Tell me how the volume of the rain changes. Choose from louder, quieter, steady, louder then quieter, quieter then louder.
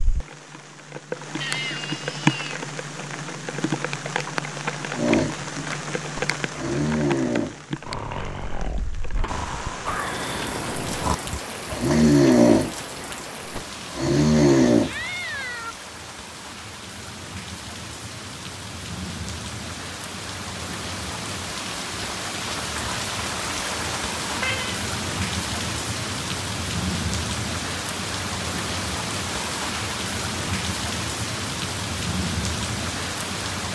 quieter then louder.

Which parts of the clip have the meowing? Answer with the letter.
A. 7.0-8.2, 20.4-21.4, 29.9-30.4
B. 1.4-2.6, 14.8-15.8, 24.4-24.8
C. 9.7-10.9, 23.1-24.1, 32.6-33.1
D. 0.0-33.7
B.